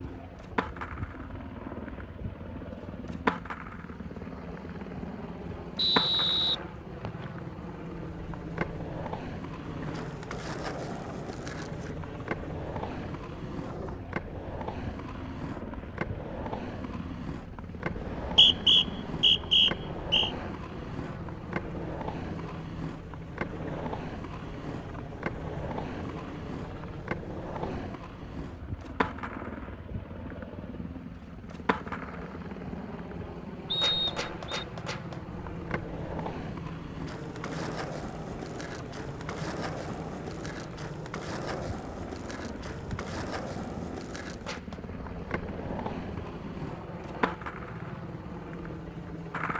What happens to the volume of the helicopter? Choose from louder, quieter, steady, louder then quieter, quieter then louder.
steady.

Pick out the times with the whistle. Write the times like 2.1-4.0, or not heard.
5.8-7.2, 17.9-20.3, 33.7-34.6.